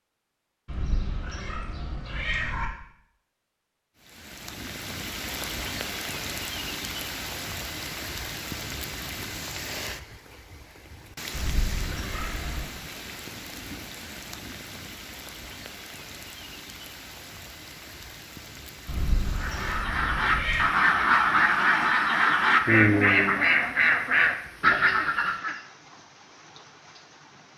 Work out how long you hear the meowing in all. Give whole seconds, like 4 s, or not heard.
5 s.